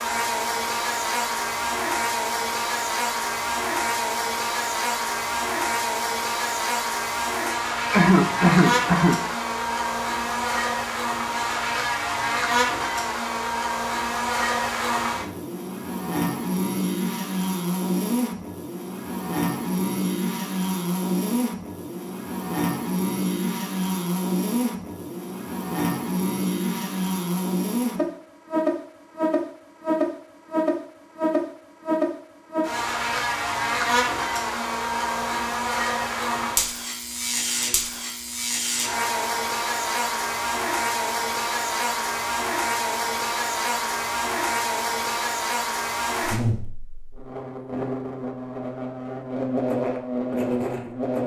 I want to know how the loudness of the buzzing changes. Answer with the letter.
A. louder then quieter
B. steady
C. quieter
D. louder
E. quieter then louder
B.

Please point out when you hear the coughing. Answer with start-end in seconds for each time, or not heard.
7.9-9.2.